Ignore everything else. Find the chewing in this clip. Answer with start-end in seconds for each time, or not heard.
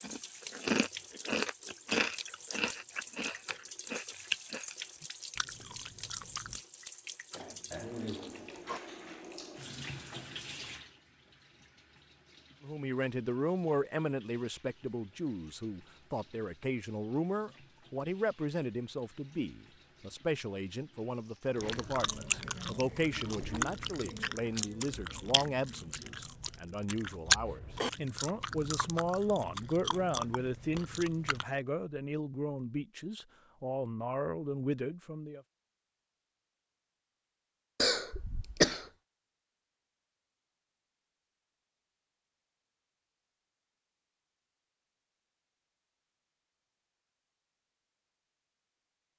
0.0-6.6, 21.6-31.4.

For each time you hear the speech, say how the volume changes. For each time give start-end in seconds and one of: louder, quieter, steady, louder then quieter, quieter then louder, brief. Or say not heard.
12.6-35.4 steady.